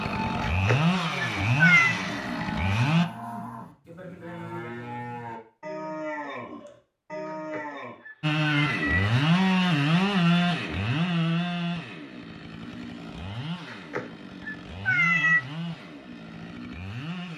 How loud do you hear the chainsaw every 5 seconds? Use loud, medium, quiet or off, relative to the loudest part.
loud, loud, medium, quiet.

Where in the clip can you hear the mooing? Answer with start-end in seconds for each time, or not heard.
0.0-8.0.